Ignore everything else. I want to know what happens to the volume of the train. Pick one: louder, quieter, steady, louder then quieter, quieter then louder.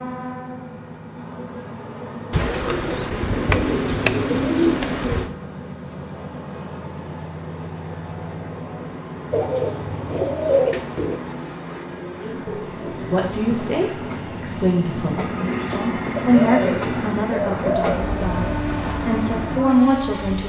louder.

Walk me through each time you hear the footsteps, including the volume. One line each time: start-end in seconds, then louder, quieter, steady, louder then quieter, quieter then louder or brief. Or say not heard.
not heard.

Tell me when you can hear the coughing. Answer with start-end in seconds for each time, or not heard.
not heard.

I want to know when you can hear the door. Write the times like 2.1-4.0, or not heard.
3.5-4.1, 12.4-13.6.